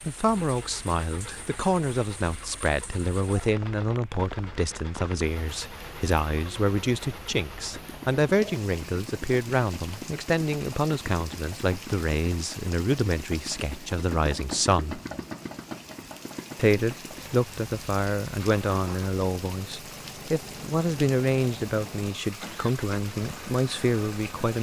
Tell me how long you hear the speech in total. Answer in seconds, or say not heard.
23 s.